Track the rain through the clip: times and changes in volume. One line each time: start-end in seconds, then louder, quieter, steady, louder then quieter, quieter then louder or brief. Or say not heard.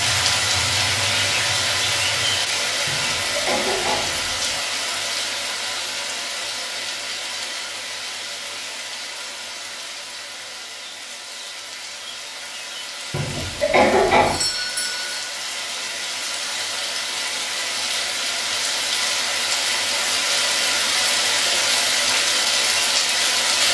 0.0-23.6 quieter then louder.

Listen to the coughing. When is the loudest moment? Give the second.
14 s.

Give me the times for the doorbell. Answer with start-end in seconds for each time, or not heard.
14.2-15.2.